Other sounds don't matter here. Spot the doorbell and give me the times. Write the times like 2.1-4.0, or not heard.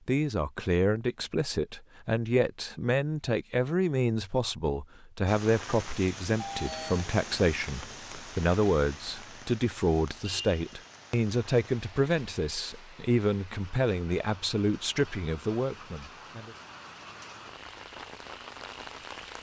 6.3-7.1.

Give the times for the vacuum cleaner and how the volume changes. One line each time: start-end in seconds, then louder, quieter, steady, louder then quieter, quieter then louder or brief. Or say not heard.
not heard.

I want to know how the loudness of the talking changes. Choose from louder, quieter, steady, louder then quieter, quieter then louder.
steady.